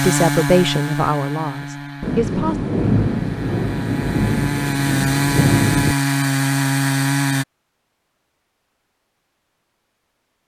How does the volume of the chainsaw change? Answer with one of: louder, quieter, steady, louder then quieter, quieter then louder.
quieter then louder.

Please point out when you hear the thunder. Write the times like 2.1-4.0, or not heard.
2.0-6.0.